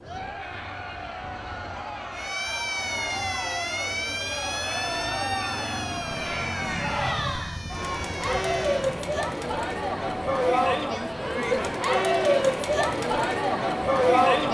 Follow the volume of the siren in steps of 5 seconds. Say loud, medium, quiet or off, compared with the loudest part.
loud, medium, off.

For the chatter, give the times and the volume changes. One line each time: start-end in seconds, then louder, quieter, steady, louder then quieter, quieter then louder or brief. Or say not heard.
0.0-14.5 louder.